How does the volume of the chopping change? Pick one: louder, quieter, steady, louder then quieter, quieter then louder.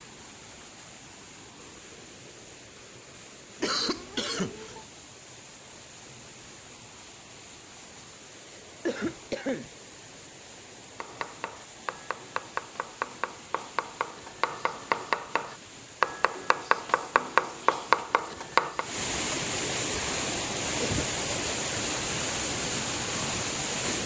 louder.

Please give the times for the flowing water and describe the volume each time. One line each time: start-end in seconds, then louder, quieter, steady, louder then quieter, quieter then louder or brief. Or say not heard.
0.0-24.0 louder.